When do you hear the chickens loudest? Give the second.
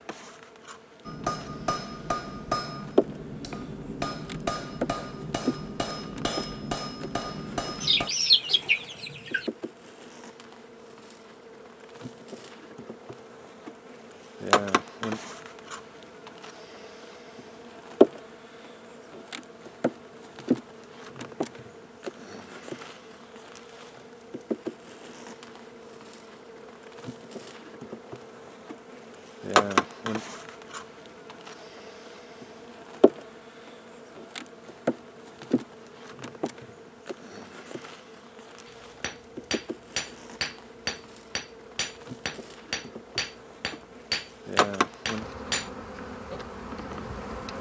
8 s.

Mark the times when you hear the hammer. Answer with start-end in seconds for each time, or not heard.
1.1-8.1, 38.6-45.7.